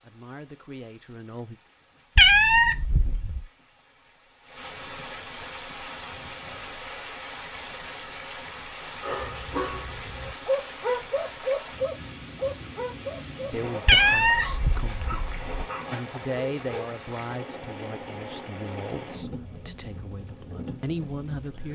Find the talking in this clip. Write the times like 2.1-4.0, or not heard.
0.0-1.6, 13.5-21.7.